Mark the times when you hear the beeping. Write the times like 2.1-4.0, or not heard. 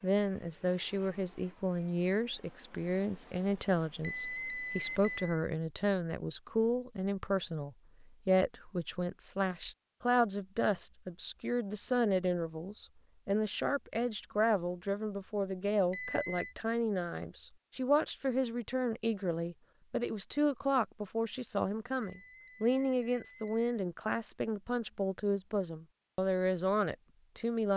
4.0-5.4, 15.9-16.6, 22.0-23.6.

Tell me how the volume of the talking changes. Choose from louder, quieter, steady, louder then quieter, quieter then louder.
steady.